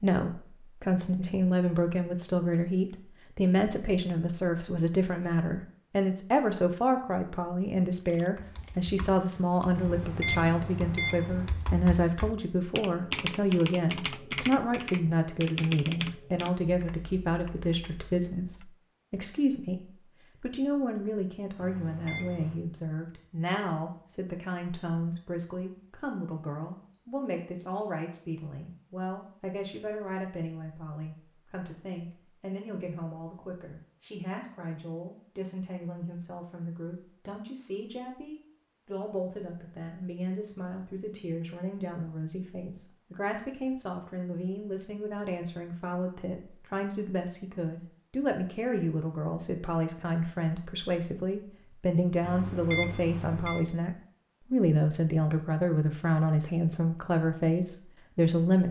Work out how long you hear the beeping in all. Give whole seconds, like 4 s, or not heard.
4 s.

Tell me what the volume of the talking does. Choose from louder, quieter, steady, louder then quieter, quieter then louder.
quieter then louder.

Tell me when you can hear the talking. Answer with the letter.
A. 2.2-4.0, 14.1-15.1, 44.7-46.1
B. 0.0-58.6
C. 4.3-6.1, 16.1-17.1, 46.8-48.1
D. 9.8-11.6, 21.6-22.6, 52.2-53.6
B.